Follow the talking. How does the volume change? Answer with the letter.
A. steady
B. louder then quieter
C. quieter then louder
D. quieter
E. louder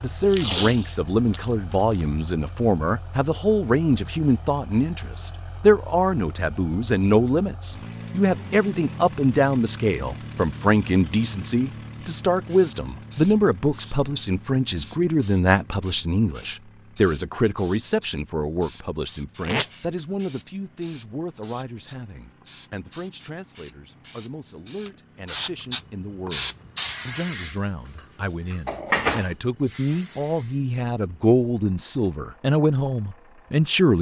C.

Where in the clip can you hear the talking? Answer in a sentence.
The talking can be heard from 0.0 to 33.9 s.